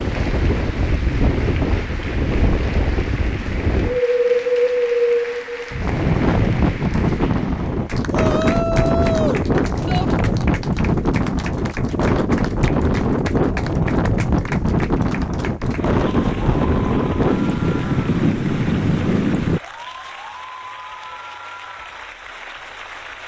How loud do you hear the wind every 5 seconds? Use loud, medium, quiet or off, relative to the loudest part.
loud, loud, loud, loud, off.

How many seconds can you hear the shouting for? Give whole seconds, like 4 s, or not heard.
2 s.